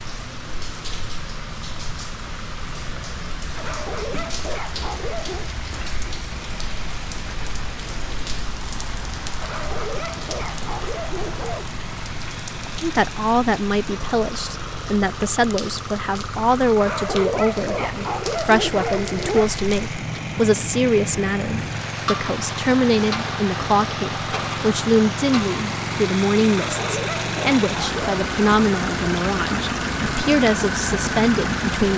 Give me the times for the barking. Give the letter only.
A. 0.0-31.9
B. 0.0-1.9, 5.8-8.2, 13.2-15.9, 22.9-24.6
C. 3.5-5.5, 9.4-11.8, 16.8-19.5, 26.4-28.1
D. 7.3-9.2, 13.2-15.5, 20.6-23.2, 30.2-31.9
C.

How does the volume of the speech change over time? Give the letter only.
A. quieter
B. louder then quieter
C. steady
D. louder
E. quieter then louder
C.